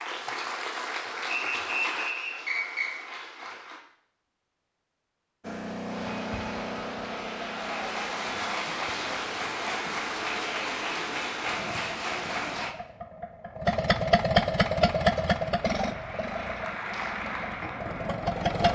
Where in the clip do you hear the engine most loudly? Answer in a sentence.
The loudest moment of the engine is at 15 seconds.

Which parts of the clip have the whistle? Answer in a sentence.
The whistle can be heard from 1.3 to 2.9 s.